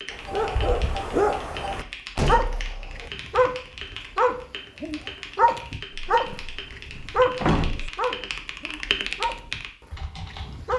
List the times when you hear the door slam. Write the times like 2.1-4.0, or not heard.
2.1-3.1, 5.9-7.9.